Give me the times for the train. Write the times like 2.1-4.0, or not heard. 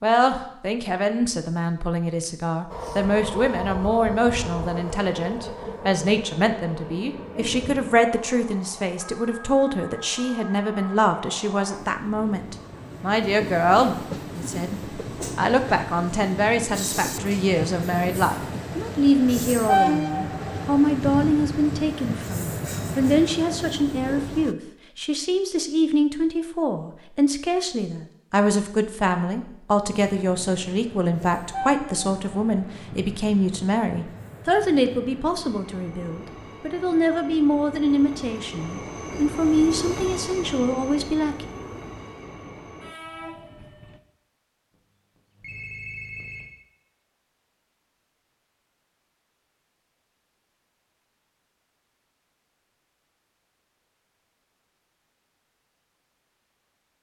2.7-24.6, 29.9-44.0.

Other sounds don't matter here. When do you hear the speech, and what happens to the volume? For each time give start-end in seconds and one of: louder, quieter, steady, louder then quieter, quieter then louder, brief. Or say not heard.
0.0-41.5 steady.